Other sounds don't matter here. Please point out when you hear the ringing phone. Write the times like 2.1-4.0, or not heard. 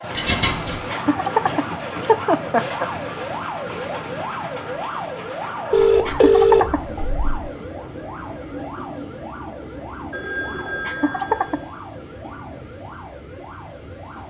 0.1-0.8, 5.7-7.3, 10.1-11.7.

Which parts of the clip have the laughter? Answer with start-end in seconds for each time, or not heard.
0.9-2.9, 6.0-6.8, 10.8-11.6.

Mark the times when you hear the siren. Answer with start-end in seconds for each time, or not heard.
0.0-14.2.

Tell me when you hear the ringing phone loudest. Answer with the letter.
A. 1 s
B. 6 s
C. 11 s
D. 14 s
B.